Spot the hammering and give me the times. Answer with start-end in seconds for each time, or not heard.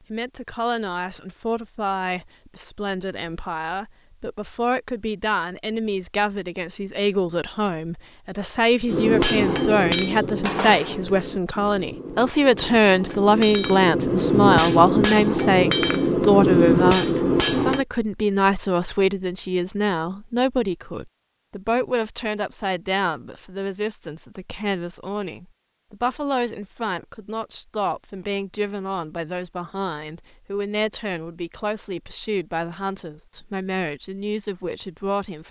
8.8-17.9.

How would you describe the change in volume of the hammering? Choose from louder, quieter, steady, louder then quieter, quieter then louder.
quieter then louder.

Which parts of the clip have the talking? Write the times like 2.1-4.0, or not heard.
0.1-35.4.